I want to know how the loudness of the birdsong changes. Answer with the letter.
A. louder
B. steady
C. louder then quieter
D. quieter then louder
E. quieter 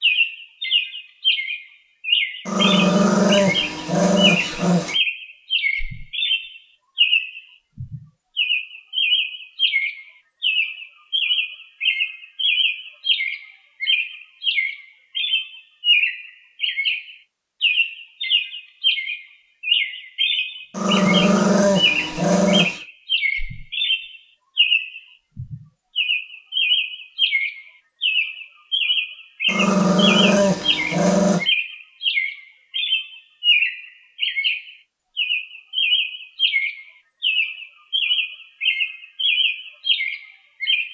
B.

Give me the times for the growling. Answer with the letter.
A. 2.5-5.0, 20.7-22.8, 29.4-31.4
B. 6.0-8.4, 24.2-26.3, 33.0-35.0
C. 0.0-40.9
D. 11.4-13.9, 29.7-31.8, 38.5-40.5
A.